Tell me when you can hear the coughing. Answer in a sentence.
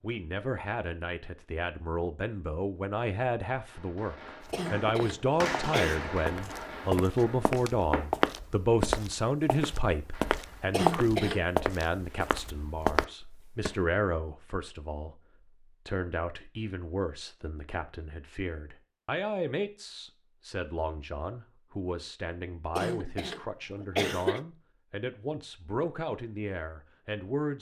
You can hear the coughing from 4.5 to 6.0 s, from 10.7 to 11.4 s and from 22.8 to 24.4 s.